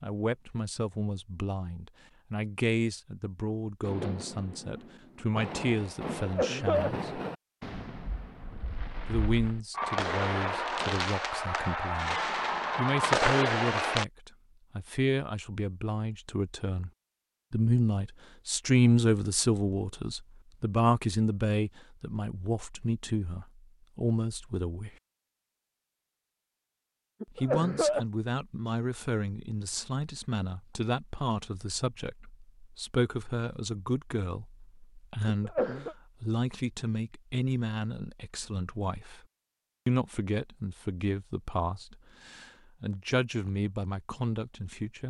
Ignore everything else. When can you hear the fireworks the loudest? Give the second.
13 s.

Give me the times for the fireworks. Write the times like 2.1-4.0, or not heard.
3.8-14.1.